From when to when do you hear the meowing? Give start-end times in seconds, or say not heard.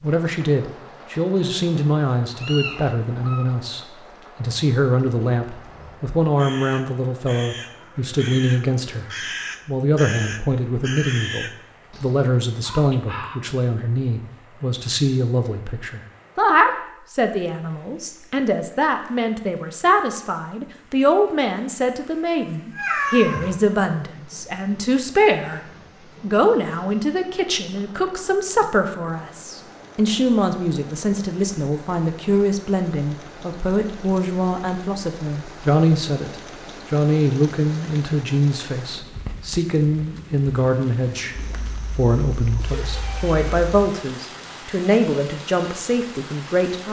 2.4-3.5, 22.7-23.5, 41.4-43.9.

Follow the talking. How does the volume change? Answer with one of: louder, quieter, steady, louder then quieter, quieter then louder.
steady.